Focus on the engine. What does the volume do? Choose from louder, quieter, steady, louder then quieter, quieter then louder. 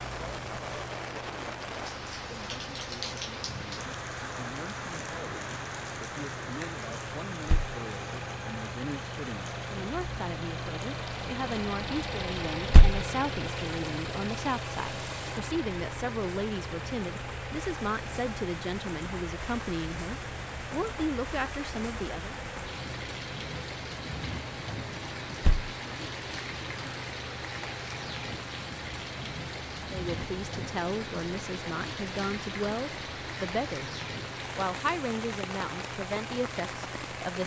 louder then quieter.